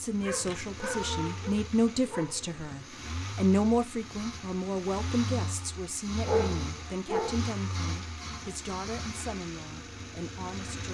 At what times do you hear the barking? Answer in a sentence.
The barking can be heard from 0.2 to 2.9 s and from 6.2 to 7.5 s.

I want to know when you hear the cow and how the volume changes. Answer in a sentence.
The cow can't be heard in this clip.